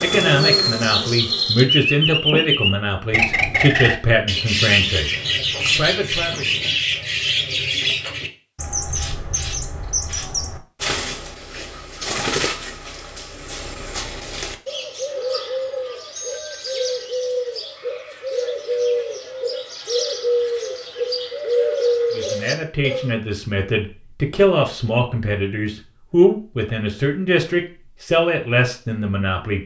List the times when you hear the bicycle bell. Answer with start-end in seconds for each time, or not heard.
16.1-17.1.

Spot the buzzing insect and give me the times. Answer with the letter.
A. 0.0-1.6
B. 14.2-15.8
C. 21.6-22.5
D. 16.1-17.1
A.